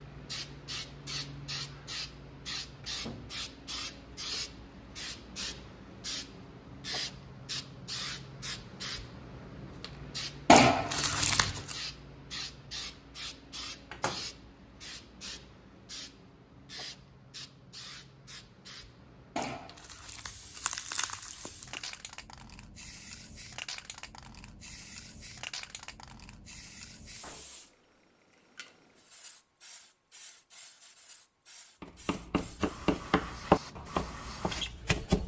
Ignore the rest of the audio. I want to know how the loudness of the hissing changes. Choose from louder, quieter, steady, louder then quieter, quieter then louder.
quieter.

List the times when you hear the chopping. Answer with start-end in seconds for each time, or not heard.
31.8-35.2.